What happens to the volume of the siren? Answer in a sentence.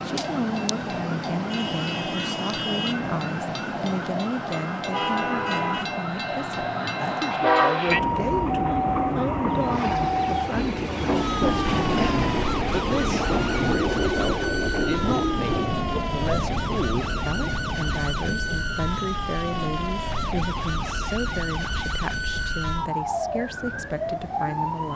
The loudness of the siren stays about the same.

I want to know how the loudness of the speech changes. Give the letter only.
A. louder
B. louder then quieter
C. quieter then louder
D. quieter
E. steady
E.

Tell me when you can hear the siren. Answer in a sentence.
The siren can be heard from 0.0 to 24.9 s.